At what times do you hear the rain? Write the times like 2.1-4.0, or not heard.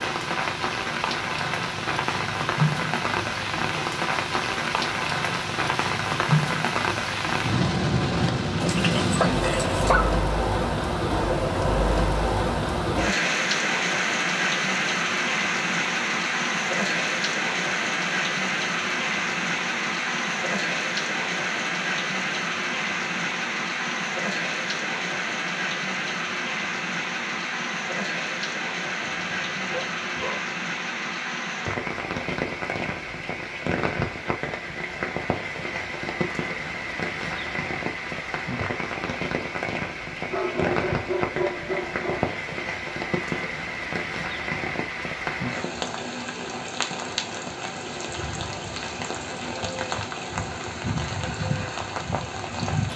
0.0-52.9.